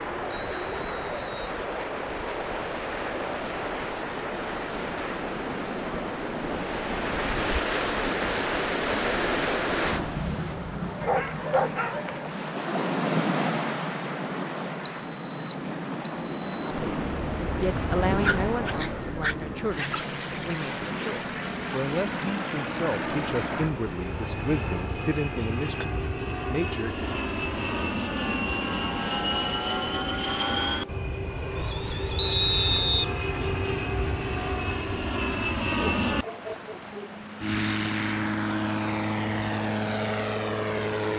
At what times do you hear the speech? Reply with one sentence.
You can hear the speech from 16.6 to 27.1 s.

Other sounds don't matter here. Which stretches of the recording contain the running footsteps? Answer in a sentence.
The running footsteps can't be heard in this clip.